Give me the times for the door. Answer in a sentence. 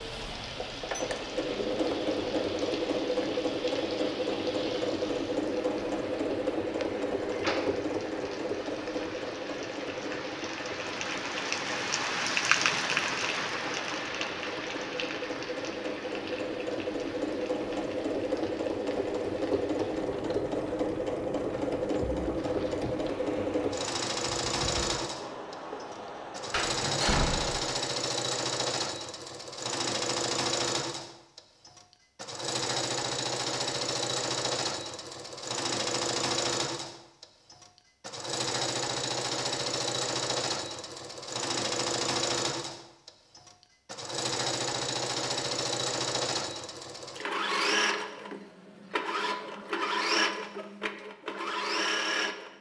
The door can be heard from 7.3 to 7.8 s and from 26.5 to 27.6 s.